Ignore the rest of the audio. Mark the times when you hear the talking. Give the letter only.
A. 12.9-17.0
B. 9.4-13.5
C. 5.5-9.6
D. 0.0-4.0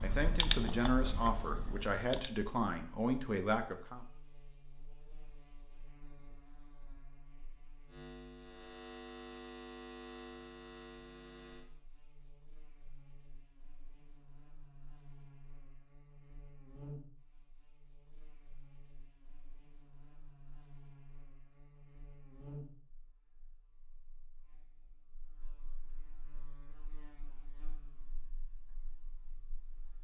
D.